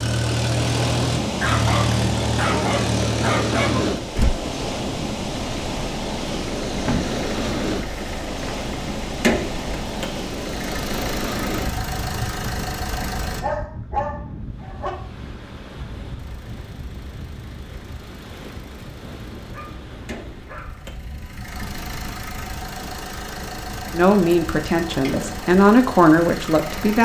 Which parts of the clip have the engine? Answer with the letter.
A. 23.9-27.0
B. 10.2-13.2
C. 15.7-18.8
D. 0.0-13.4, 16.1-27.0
D.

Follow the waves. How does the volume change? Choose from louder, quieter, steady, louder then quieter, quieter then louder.
quieter.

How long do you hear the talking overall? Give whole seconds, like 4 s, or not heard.
3 s.